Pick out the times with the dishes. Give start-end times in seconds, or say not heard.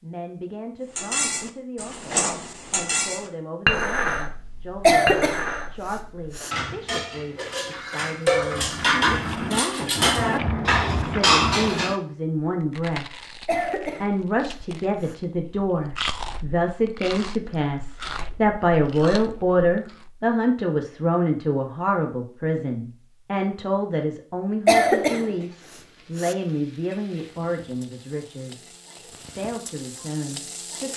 0.9-11.9.